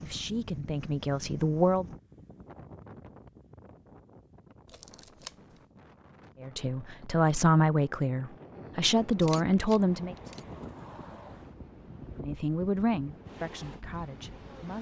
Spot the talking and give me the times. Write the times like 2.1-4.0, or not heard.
0.0-1.9, 6.4-10.2, 12.2-14.7.